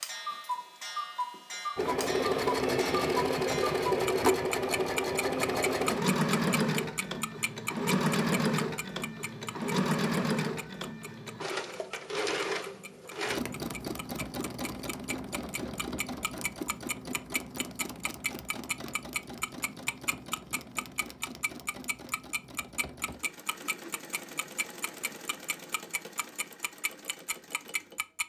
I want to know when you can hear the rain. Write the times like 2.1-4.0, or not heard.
not heard.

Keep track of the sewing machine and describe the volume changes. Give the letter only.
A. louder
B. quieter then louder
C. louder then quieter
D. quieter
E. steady
D.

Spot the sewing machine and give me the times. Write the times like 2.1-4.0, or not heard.
1.8-28.2.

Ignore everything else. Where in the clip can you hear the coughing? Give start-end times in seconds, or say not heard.
not heard.